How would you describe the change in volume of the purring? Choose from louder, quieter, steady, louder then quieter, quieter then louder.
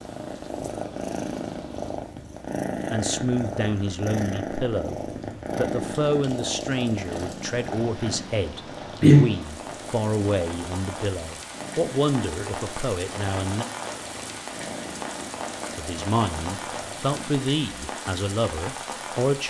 louder then quieter.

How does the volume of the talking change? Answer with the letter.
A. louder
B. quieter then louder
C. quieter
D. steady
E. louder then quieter
D.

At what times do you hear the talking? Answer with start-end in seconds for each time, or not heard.
2.9-13.7, 15.8-19.4.